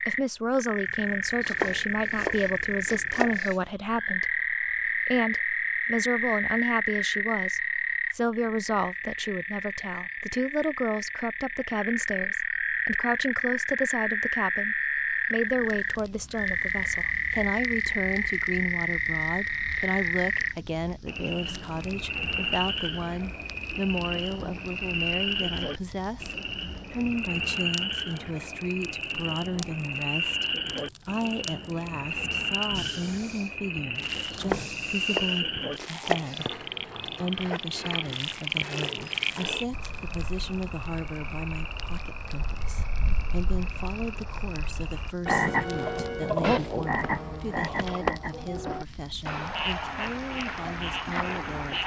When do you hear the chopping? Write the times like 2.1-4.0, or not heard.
1.4-3.6, 34.3-36.5.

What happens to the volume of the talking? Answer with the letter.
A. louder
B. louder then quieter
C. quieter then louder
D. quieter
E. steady
D.